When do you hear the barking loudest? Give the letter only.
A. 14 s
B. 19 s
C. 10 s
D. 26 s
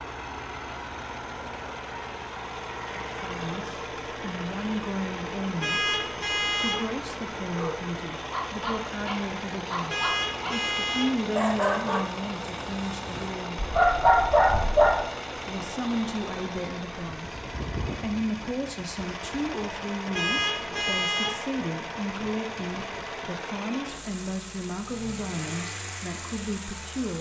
A.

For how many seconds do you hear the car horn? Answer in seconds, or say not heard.
4 s.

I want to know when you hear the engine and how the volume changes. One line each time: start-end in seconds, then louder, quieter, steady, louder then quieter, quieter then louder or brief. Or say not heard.
0.0-27.1 steady.